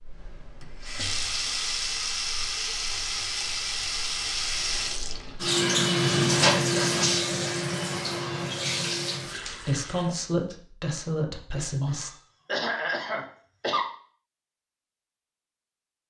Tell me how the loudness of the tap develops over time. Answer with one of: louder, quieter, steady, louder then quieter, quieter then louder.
louder then quieter.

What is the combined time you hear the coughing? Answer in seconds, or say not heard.
2 s.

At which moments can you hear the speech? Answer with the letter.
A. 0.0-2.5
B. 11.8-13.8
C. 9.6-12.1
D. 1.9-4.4
C.